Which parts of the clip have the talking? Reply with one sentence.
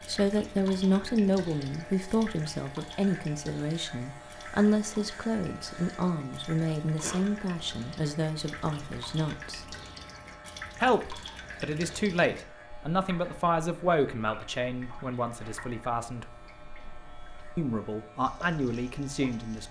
The talking can be heard from 0.1 to 9.8 s, from 10.8 to 16.2 s and from 17.6 to 19.6 s.